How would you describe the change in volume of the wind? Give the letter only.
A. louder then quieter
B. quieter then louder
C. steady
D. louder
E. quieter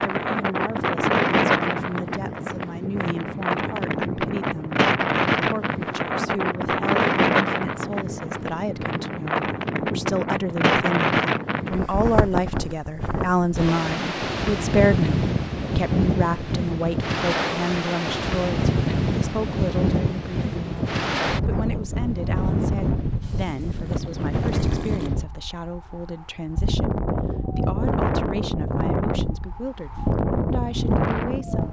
C.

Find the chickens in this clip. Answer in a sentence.
The chickens can't be heard in this clip.